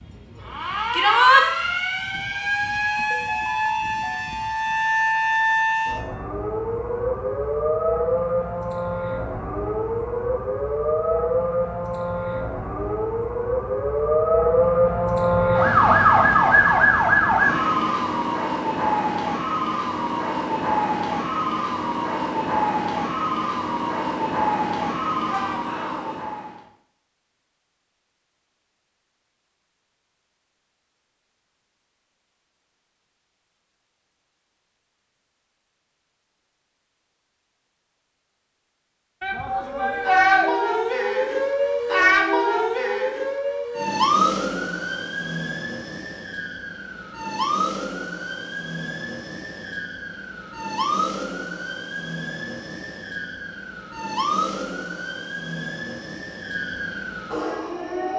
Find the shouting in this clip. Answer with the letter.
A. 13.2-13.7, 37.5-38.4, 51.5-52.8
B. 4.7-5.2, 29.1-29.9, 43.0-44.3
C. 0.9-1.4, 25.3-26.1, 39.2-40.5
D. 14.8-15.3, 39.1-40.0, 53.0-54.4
C.